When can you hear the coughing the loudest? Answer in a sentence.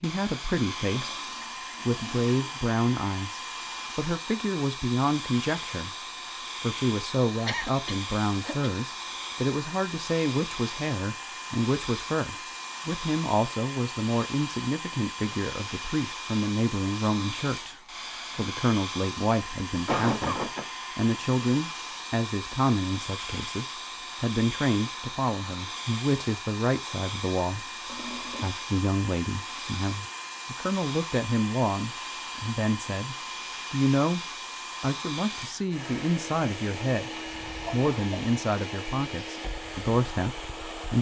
The volume of the coughing peaks at 20 seconds.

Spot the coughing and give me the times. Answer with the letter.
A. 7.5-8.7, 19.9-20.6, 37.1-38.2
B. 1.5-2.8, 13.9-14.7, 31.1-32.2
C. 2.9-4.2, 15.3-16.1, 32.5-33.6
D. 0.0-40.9
A.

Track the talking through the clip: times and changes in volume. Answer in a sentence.
You can hear the talking from 0.0 to 40.9 s, at a steady volume.